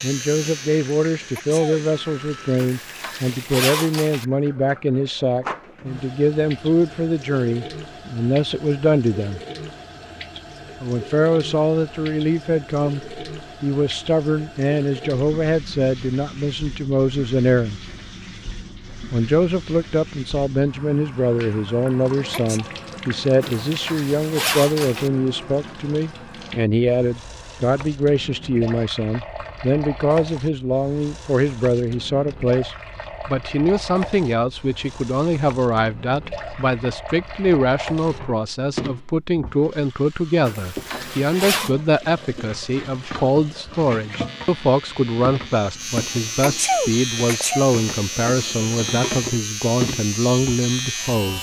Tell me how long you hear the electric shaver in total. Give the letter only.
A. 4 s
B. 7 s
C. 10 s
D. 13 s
C.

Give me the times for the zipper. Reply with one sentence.
You can hear the zipper from 2.5 to 4.2 s, from 23.4 to 25.1 s and from 40.5 to 41.7 s.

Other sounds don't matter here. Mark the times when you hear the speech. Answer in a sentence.
You can hear the speech from 0.0 to 9.4 s, from 10.8 to 17.8 s and from 19.1 to 51.3 s.